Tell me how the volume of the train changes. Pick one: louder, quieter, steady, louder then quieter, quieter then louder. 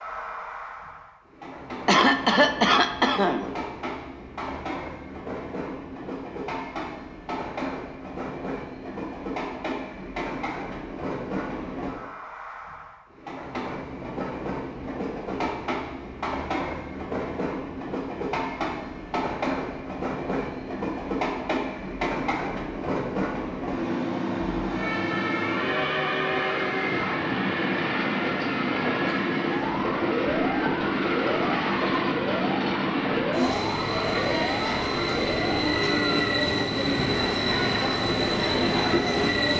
louder.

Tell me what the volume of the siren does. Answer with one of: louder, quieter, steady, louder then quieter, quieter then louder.
steady.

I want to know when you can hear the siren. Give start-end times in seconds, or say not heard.
24.6-36.4.